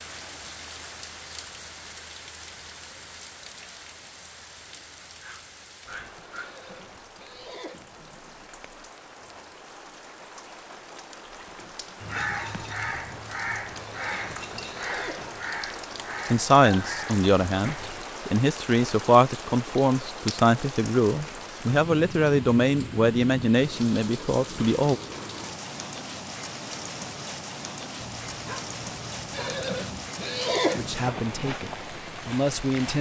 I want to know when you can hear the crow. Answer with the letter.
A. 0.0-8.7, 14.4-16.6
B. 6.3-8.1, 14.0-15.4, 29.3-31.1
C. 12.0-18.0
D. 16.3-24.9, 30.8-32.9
C.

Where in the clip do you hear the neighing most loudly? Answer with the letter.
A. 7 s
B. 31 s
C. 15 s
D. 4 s
B.